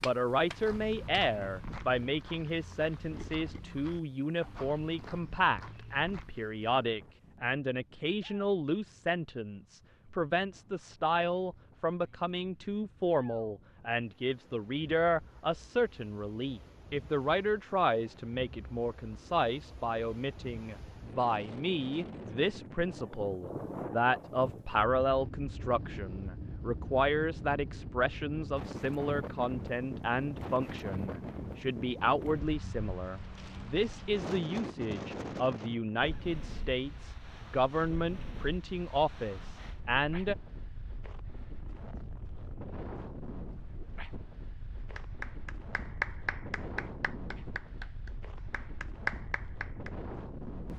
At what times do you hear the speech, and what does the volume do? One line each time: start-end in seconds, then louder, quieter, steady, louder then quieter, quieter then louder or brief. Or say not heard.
0.0-40.4 steady.